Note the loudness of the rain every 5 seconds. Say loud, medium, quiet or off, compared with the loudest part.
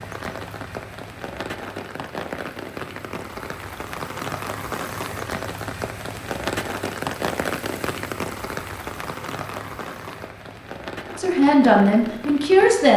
loud, loud, medium.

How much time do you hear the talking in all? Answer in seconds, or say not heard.
2 s.